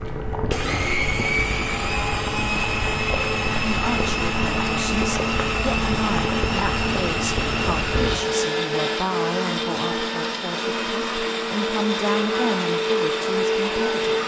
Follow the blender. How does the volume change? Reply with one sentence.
The volume of the blender stays about the same.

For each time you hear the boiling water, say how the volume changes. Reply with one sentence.
The boiling water can be heard from 0.0 to 8.2 s, at a steady volume.